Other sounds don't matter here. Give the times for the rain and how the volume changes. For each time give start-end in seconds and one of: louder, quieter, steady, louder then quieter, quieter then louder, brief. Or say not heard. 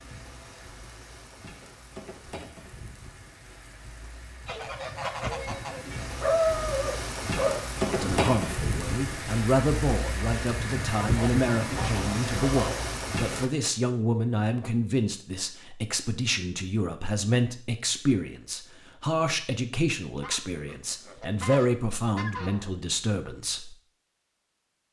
0.0-13.5 louder.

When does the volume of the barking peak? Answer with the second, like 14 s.
6 s.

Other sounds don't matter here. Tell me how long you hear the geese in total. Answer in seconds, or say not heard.
6 s.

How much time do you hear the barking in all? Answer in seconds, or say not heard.
2 s.